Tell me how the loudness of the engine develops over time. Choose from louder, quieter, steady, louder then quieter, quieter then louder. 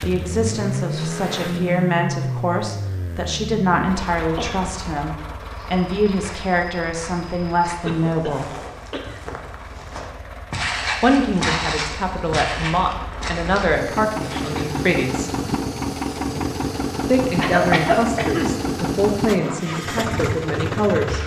quieter then louder.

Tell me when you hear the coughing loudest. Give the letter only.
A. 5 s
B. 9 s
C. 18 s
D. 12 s
C.